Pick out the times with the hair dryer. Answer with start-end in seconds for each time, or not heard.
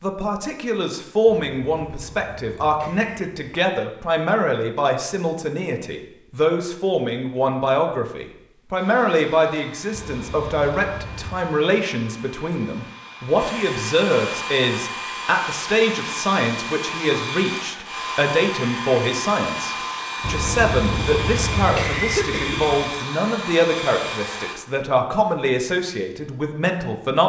8.7-24.6.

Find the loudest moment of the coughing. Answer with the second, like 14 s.
22 s.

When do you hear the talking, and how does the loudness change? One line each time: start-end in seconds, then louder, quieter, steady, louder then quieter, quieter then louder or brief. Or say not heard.
0.0-27.2 steady.